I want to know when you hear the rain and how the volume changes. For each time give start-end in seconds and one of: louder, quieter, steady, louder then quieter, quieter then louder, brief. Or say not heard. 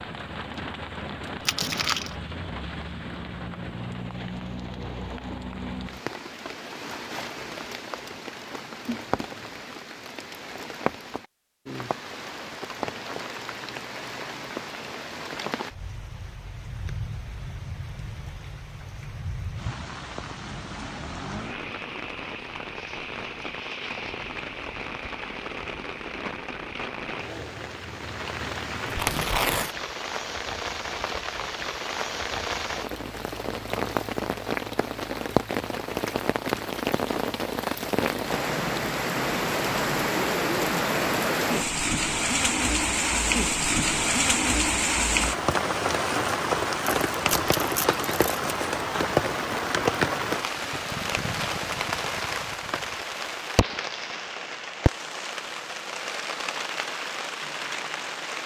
0.0-58.4 louder.